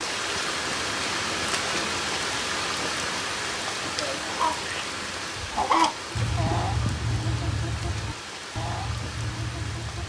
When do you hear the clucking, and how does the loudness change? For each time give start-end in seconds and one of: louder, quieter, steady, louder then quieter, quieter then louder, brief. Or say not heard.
4.2-10.0 louder then quieter.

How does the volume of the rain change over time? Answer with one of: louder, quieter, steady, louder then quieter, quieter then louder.
quieter.